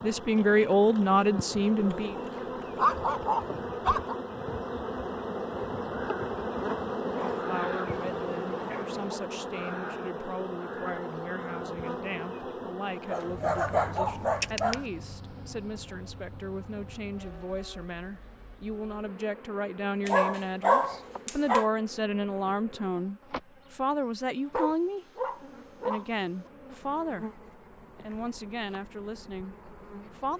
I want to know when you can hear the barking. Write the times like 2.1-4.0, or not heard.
1.8-4.2, 7.2-9.2, 13.1-14.8, 20.1-21.7, 24.5-26.5.